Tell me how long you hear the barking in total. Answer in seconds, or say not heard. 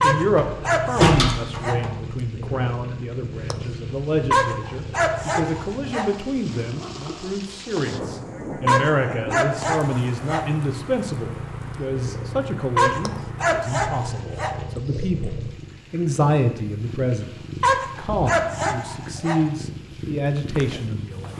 9 s.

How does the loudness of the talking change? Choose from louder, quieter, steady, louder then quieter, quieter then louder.
steady.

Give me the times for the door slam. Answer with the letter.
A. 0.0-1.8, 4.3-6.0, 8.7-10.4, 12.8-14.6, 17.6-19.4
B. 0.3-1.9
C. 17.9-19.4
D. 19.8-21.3
B.